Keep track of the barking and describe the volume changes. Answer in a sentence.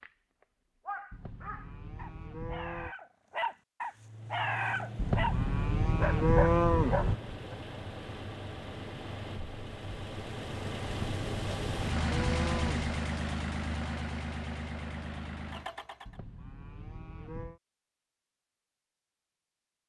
The loudness of the barking goes up.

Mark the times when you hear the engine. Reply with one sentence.
You can hear the engine from 4.0 to 16.2 s.